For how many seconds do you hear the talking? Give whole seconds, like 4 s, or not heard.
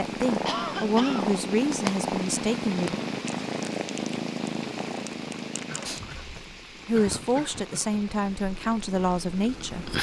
6 s.